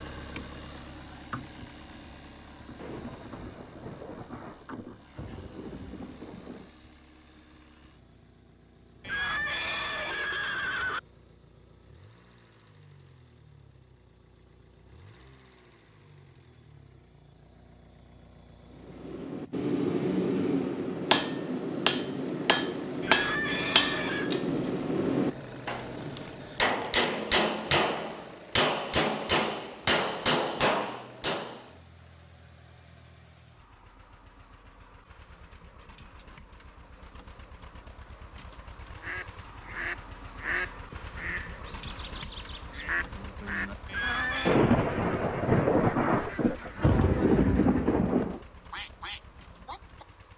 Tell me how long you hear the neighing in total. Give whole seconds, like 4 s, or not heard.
4 s.